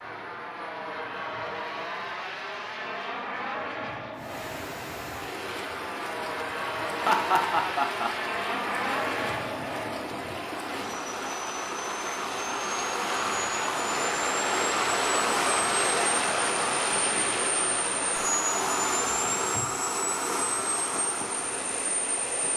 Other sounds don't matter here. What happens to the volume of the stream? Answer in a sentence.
The loudness of the stream goes up, then down.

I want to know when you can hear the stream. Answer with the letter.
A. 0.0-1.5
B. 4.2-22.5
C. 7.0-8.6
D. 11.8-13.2
B.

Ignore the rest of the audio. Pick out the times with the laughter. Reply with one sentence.
The laughter can be heard from 7.0 to 8.6 s.